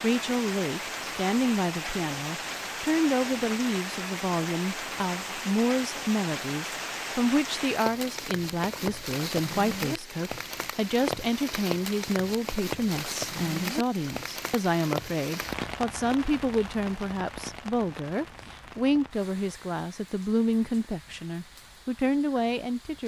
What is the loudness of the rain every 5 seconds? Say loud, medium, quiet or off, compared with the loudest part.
loud, loud, loud, medium, quiet.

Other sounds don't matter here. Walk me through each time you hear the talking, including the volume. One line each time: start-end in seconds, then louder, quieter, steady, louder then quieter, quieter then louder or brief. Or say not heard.
0.0-23.0 steady.